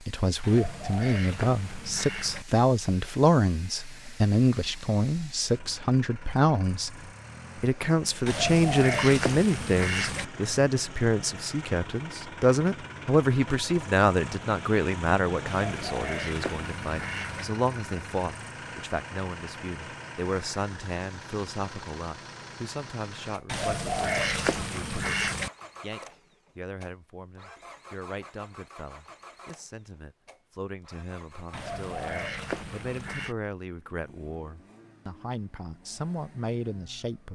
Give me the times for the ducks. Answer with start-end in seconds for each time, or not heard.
0.4-2.5, 8.2-10.2, 15.4-17.4, 23.4-25.5, 31.5-33.4.